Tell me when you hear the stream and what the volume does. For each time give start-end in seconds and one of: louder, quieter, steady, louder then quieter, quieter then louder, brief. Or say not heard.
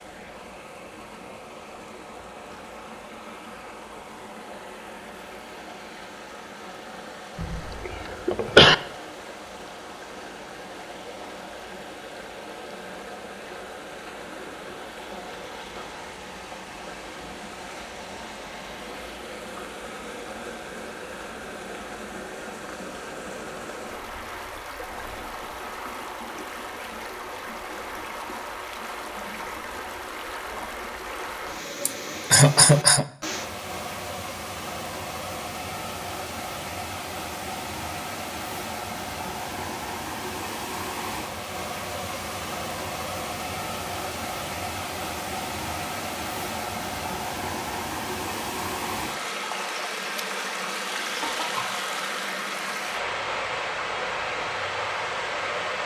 0.0-55.8 louder.